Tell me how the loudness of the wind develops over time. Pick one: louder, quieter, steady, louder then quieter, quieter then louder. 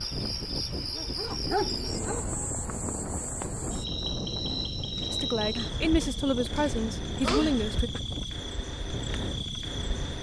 steady.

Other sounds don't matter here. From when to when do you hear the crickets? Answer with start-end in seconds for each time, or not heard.
0.0-10.1.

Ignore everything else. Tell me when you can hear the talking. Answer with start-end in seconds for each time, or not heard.
5.1-7.9.